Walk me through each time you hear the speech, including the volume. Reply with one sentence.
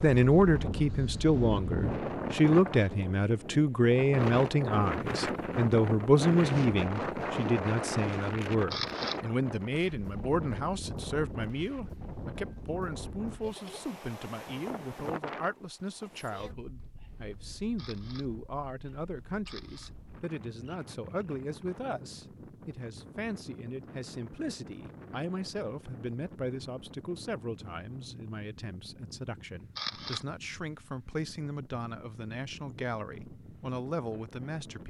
The speech can be heard from 0.0 to 34.8 s, getting quieter.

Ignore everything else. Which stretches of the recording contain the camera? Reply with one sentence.
The camera can be heard from 8.5 to 9.3 s, from 17.6 to 18.4 s, from 19.4 to 19.9 s and from 29.6 to 30.4 s.